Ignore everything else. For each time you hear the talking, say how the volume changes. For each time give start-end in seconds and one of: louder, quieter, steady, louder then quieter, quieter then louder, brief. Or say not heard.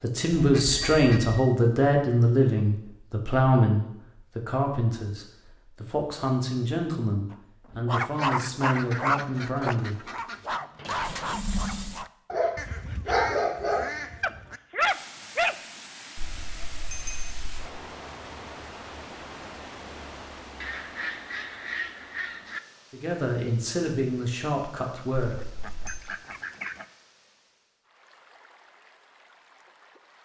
0.0-10.1 quieter
22.9-25.4 brief.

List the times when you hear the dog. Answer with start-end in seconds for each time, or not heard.
7.3-15.6.